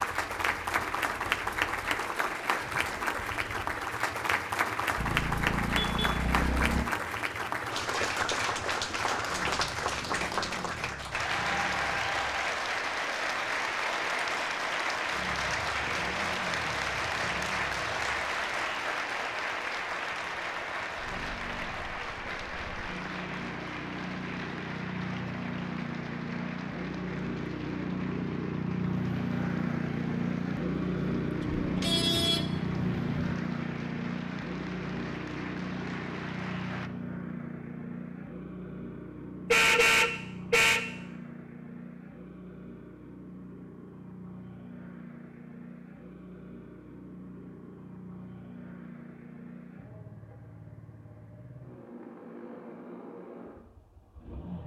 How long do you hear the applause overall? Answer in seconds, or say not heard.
37 s.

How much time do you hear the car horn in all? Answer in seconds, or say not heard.
5 s.